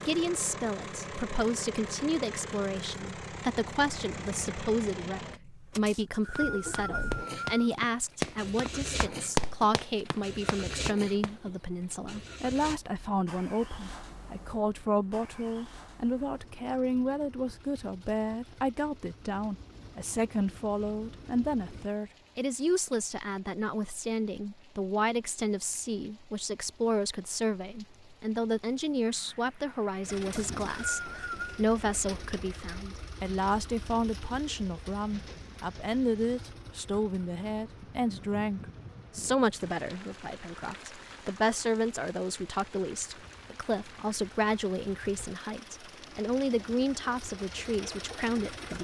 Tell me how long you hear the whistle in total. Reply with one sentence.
You can hear the whistle for 3 seconds altogether.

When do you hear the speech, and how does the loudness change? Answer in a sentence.
The speech can be heard from 0.1 to 48.7 s, at a steady volume.